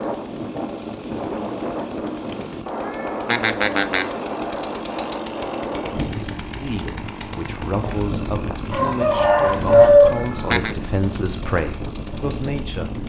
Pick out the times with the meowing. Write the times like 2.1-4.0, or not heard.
2.3-4.1, 9.5-10.8.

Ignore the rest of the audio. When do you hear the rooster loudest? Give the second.
10 s.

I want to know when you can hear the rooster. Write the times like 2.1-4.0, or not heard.
8.7-10.2.